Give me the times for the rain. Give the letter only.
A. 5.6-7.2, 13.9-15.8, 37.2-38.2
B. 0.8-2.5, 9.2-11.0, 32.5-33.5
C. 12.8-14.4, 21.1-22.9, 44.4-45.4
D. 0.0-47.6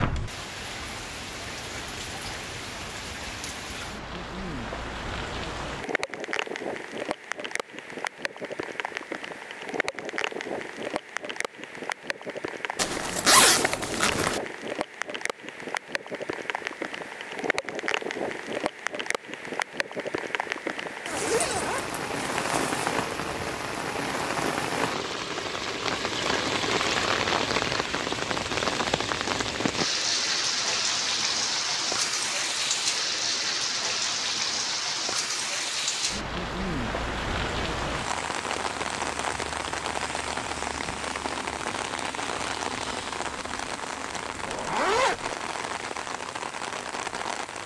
D.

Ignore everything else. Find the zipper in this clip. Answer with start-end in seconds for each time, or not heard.
12.8-14.4, 21.1-22.9, 44.4-45.4.